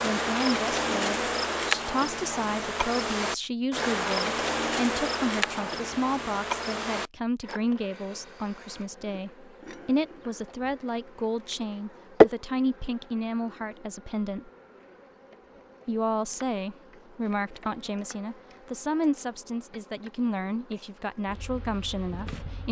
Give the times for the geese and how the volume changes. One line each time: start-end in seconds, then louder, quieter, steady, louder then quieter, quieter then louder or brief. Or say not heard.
not heard.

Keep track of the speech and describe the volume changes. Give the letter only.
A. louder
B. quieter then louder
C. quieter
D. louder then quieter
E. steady
E.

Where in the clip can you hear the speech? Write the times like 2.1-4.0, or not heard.
0.0-14.5, 15.8-22.6.